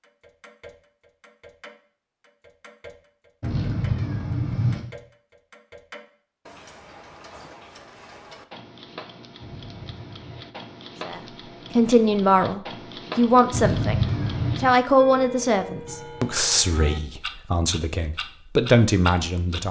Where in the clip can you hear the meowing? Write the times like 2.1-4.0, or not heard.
3.4-4.8, 9.4-10.5, 13.5-14.8.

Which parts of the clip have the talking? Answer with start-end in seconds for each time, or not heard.
11.1-19.6.